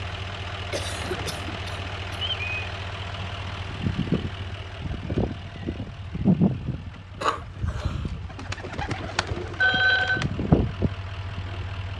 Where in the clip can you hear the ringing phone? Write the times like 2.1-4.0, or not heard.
9.6-10.2.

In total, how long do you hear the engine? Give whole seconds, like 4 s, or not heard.
12 s.